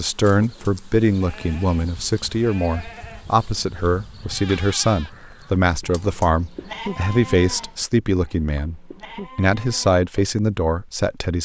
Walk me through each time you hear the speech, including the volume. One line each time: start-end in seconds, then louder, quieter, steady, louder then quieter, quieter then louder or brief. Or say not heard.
0.0-11.4 steady.